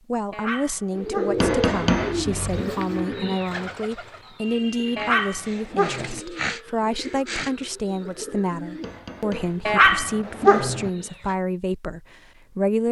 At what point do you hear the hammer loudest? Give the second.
2 s.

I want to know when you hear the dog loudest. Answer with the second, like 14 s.
10 s.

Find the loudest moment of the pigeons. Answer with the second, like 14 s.
1 s.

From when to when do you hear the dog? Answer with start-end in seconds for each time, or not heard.
0.3-1.5, 5.0-6.2, 9.7-10.9.